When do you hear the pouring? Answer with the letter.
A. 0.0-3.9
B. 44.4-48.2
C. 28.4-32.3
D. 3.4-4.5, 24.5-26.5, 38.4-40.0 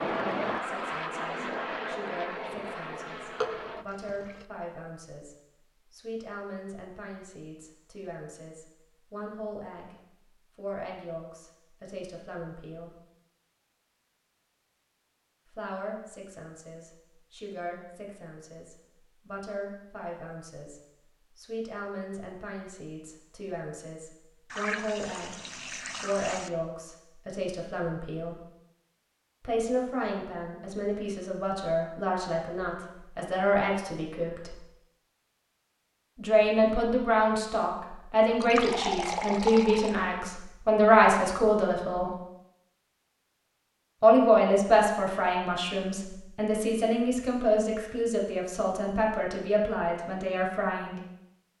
D.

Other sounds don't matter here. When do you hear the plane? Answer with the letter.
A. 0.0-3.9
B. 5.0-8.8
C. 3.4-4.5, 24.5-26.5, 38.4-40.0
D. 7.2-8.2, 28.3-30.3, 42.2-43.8
A.